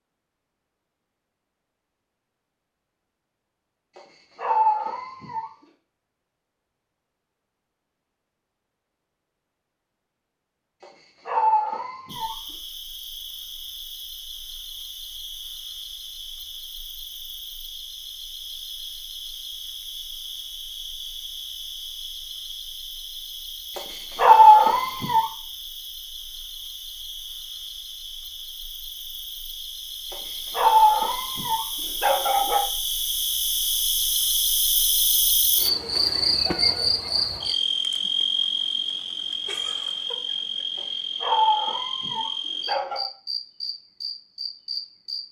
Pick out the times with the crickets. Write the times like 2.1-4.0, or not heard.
12.1-45.2.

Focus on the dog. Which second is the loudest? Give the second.
24 s.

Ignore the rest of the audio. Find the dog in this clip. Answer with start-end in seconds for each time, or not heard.
4.0-5.5, 10.8-12.3, 23.8-25.2, 30.1-32.6, 40.8-43.0.